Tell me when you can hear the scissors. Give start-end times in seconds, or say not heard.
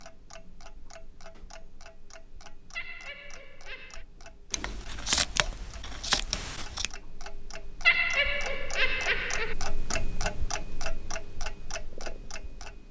4.5-6.9.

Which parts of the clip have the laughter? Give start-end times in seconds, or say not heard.
2.8-4.0, 7.8-9.6.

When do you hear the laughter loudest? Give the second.
8 s.